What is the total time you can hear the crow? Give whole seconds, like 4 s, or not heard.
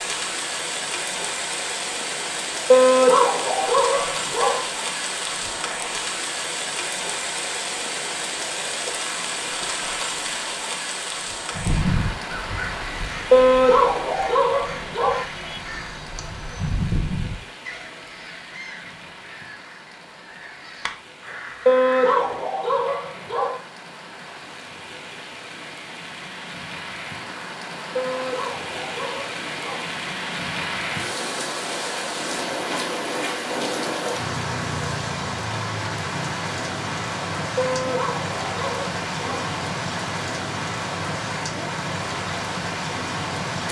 11 s.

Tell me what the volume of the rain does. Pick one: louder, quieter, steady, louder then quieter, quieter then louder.
quieter then louder.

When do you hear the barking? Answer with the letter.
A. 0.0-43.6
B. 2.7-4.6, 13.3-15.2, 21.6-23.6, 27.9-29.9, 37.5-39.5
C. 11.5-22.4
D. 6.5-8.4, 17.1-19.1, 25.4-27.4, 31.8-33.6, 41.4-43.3
B.